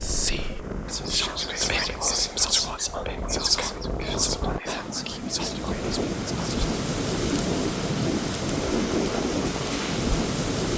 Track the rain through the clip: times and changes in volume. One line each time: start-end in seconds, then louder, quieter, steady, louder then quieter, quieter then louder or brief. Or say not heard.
0.0-10.7 louder.